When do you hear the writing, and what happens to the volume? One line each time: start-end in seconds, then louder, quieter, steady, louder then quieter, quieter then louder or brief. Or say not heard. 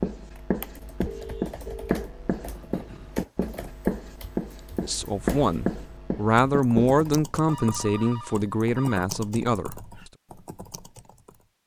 0.0-7.2 steady.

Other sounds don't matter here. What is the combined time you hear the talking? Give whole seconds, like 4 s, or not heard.
5 s.